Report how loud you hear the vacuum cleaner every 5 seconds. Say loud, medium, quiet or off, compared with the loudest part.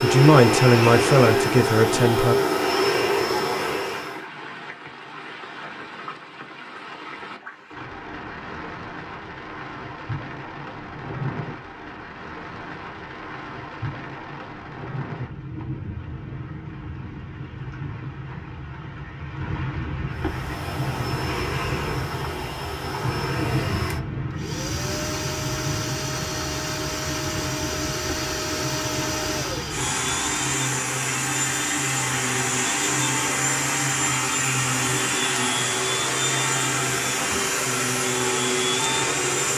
loud, off, off, off, medium, medium, loud, loud.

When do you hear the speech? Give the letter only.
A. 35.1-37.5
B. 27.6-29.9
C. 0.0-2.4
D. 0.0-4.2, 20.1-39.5
C.